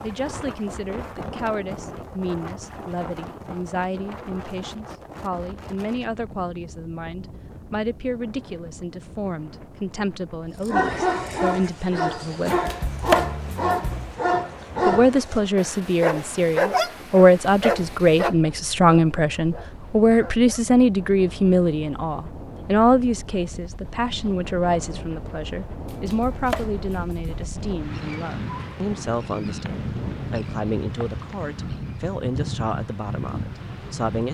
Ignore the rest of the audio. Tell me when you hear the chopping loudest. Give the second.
13 s.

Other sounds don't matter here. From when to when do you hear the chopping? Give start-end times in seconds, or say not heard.
12.4-14.2, 25.9-27.5.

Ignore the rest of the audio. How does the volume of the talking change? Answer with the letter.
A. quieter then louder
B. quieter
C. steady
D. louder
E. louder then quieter
E.